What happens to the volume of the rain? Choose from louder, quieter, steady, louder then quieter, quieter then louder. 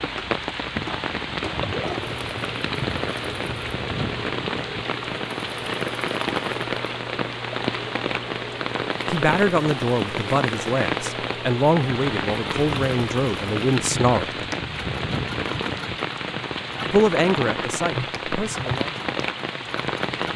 steady.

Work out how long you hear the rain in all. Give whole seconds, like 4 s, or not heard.
20 s.